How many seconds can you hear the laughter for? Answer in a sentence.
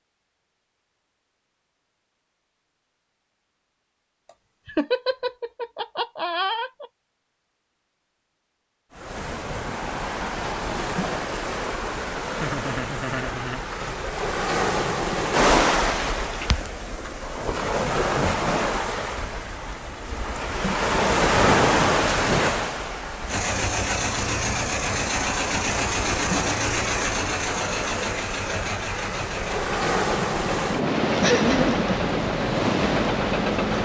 You can hear the laughter for 4 seconds altogether.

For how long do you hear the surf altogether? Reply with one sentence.
The surf can be heard for 25 seconds in total.